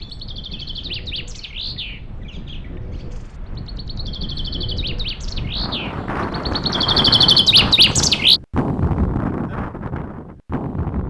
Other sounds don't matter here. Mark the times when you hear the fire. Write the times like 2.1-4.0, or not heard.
not heard.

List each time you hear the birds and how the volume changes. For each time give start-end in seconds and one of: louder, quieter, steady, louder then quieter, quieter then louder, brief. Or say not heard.
0.0-8.4 quieter then louder.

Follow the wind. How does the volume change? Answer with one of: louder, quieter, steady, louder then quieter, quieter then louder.
louder.